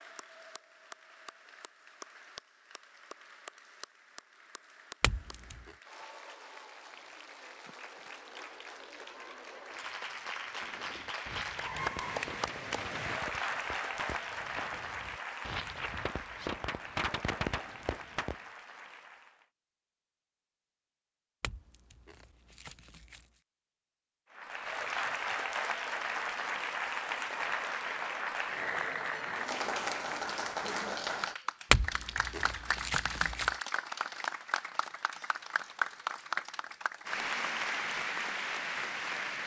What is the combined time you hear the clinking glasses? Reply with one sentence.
The clinking glasses can be heard for 4 seconds in total.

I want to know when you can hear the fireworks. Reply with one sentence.
You can hear the fireworks from 10.6 to 18.4 s.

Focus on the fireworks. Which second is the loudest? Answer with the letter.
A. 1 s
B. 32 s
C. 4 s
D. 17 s
D.